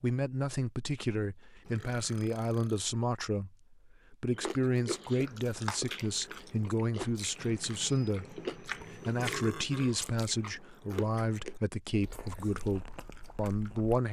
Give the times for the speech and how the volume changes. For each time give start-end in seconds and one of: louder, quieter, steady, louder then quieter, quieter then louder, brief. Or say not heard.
0.0-14.0 steady.